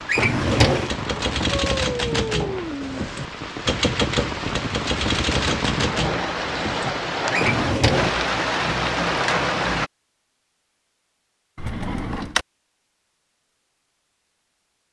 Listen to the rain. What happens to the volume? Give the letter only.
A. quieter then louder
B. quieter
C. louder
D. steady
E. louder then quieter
C.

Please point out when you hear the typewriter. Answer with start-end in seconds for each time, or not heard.
0.7-7.3.